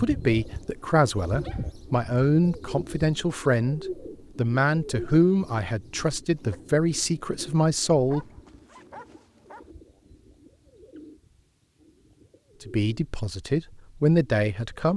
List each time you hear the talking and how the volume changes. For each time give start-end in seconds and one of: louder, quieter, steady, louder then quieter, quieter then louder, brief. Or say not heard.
0.0-8.2 steady
12.7-14.9 brief.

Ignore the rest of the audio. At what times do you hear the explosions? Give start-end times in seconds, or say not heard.
not heard.